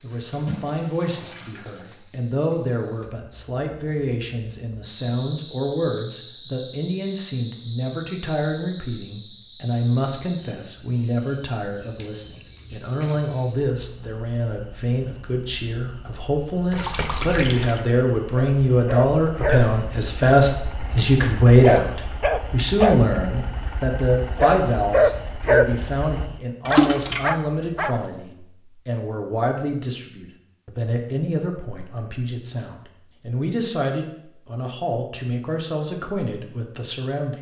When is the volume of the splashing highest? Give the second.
27 s.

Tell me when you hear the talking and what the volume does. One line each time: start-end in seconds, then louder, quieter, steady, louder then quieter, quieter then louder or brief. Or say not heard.
0.0-37.3 louder then quieter.